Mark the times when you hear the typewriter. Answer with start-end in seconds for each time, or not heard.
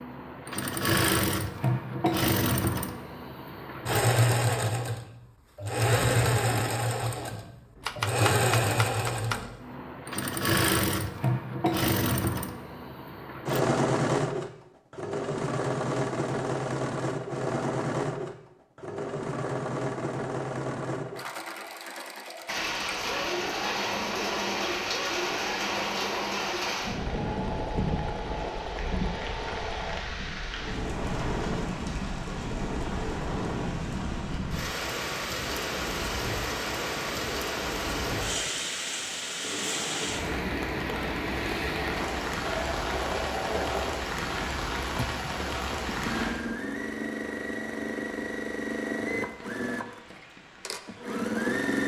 7.8-9.4.